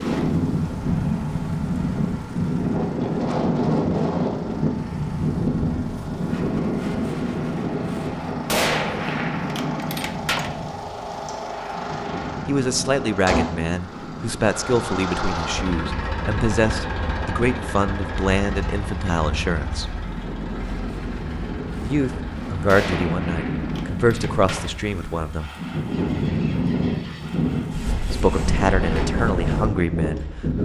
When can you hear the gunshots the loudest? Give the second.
9 s.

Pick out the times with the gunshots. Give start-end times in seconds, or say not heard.
8.4-10.5, 22.6-24.7.